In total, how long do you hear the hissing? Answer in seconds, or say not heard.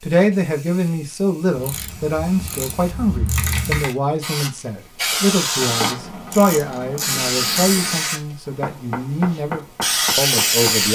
10 s.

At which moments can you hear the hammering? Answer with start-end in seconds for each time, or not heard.
8.4-10.8.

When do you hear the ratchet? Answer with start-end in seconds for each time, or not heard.
1.6-3.9, 5.5-8.0.